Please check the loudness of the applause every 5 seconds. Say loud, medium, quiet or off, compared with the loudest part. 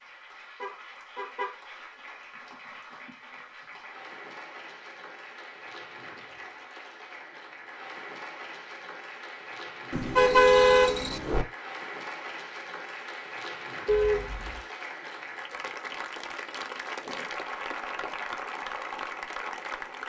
medium, medium, loud, loud.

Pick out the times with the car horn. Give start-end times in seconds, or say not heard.
0.6-1.5, 9.9-11.4, 13.8-14.6.